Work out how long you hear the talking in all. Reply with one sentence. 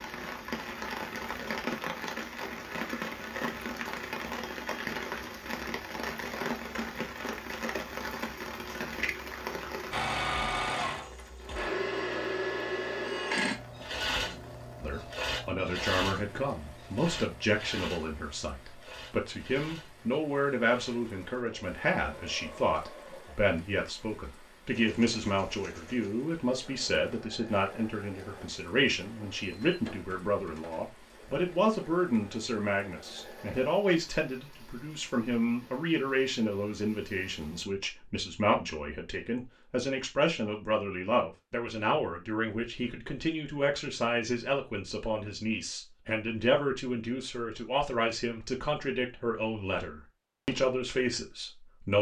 The talking can be heard for 37 seconds in total.